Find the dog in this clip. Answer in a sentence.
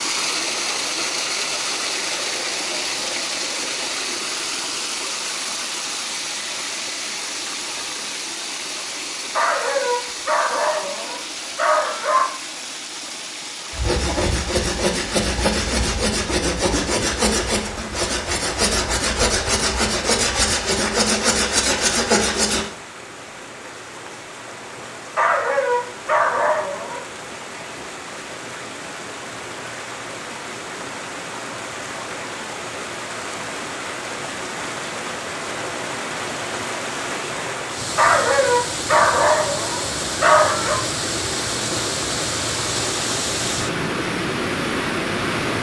The dog can be heard from 9.3 to 12.2 s, from 25.1 to 27.0 s and from 38.0 to 40.8 s.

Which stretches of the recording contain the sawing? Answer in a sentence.
The sawing can be heard from 13.7 to 22.6 s.